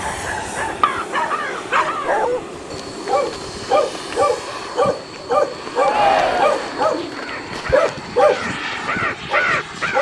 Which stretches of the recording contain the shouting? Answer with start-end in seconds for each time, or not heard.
5.8-6.7.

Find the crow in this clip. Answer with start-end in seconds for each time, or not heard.
0.0-2.2, 7.2-9.9.